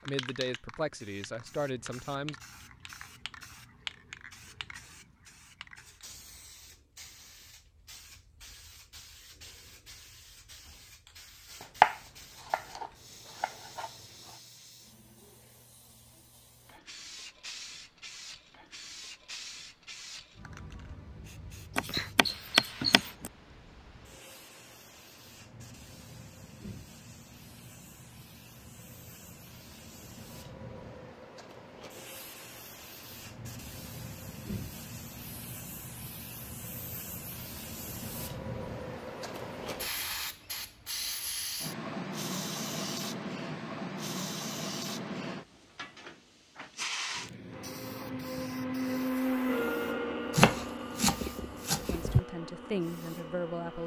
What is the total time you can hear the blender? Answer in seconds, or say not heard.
6 s.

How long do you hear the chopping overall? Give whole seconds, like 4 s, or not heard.
6 s.